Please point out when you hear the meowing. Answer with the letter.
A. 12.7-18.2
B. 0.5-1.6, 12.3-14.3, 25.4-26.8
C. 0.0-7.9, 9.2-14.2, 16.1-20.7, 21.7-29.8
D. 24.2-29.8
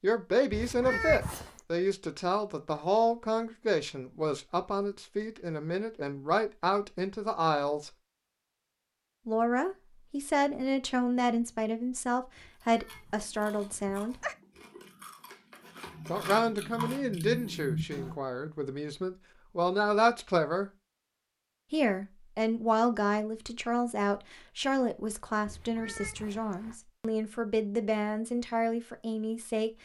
B.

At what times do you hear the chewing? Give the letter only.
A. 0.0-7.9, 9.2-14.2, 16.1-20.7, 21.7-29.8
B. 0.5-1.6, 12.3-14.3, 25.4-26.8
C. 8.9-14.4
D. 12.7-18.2
D.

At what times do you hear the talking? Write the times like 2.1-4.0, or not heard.
0.0-7.9, 9.2-14.2, 16.1-20.7, 21.7-29.8.